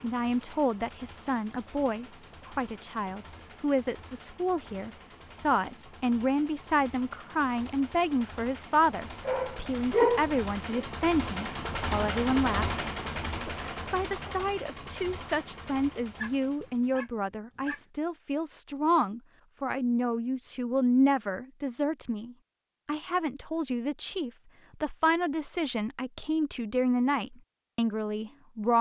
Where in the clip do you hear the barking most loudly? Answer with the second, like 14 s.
10 s.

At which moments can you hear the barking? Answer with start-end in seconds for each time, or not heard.
9.2-10.8, 16.0-17.8.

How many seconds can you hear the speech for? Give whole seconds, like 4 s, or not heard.
28 s.